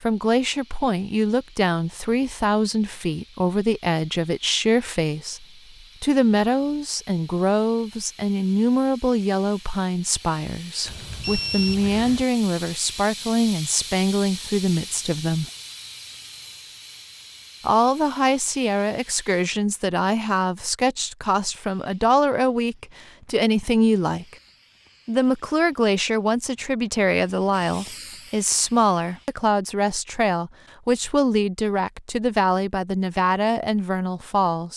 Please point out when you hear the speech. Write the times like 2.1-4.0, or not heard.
0.0-15.4, 17.6-24.4, 25.1-34.7.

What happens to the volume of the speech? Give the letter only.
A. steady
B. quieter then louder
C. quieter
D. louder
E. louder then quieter
A.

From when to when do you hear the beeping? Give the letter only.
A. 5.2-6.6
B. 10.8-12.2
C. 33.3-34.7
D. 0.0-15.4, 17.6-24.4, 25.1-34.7
B.